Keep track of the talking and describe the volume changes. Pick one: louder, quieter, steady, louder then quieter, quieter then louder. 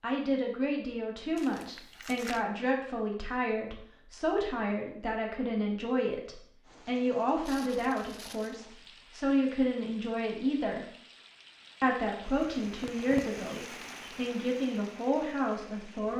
steady.